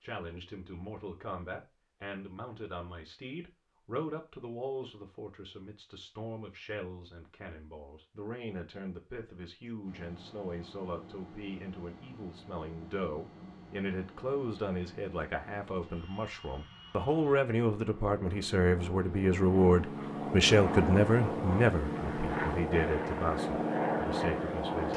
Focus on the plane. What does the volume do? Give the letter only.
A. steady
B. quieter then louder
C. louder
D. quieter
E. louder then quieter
C.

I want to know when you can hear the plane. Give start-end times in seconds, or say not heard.
9.8-24.9.